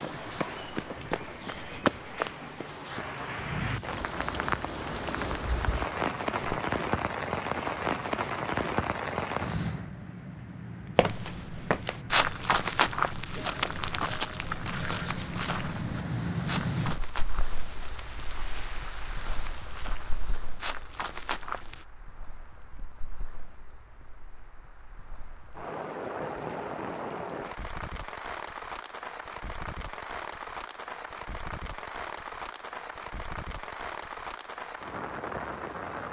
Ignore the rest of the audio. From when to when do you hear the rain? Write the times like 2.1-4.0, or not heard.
0.0-36.0.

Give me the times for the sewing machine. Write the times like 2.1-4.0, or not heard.
not heard.